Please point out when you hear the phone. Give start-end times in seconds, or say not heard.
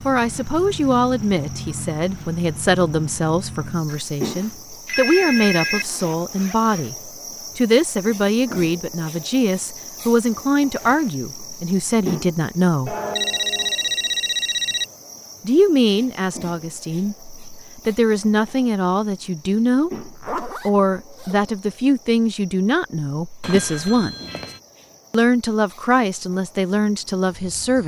3.9-5.8, 12.8-14.8, 23.4-24.6.